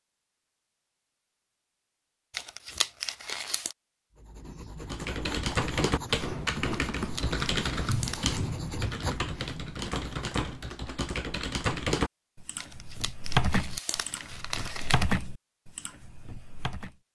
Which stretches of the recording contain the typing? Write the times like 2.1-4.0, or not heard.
4.8-16.9.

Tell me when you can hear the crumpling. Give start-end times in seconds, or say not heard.
2.3-3.8, 6.7-8.3, 12.6-15.1.